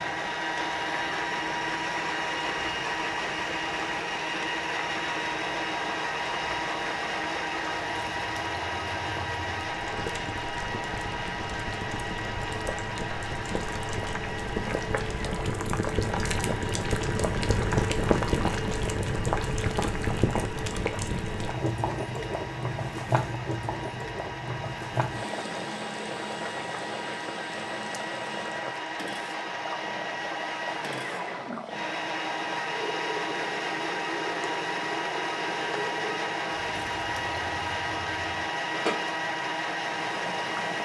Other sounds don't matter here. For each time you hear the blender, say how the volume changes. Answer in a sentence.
You can hear the blender from 0.0 to 40.7 s, getting quieter then louder.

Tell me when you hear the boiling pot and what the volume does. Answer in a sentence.
You can hear the boiling pot from 0.0 to 40.7 s, getting louder then quieter.